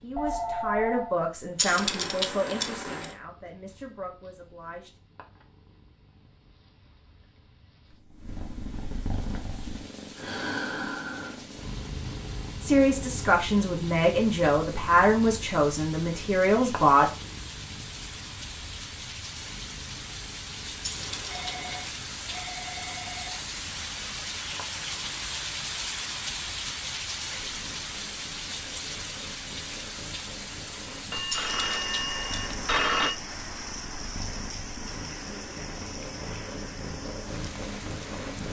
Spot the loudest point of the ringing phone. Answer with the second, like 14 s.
33 s.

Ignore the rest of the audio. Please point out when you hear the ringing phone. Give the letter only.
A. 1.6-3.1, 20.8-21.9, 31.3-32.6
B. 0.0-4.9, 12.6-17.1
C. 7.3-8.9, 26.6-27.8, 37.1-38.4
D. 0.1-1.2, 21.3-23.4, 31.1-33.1
D.